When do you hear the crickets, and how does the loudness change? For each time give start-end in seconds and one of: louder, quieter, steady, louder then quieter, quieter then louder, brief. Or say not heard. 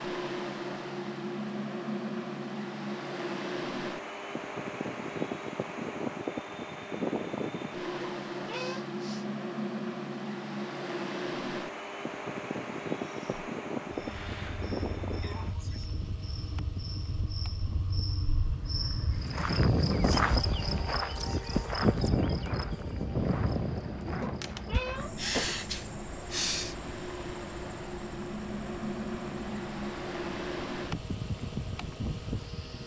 12.9-32.8 louder then quieter.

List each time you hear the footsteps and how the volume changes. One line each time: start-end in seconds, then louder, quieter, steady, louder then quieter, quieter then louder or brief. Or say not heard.
not heard.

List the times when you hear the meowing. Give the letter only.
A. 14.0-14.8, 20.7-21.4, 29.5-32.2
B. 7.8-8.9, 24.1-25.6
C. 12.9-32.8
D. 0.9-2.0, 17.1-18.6
B.